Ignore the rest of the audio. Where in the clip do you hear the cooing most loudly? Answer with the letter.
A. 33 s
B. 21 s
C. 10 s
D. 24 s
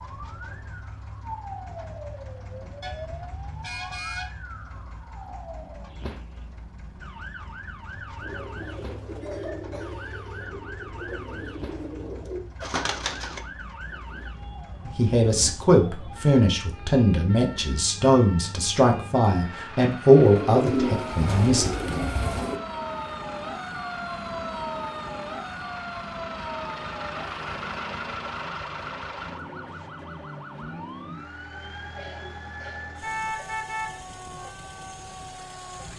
B.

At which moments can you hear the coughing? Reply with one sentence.
You can hear the coughing from 9.2 to 10.5 s and from 31.9 to 33.5 s.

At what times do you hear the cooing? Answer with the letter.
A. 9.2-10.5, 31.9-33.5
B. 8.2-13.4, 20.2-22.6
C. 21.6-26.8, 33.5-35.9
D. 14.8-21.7
B.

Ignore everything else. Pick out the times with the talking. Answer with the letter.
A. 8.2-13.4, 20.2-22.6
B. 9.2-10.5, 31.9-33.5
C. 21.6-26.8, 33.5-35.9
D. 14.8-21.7
D.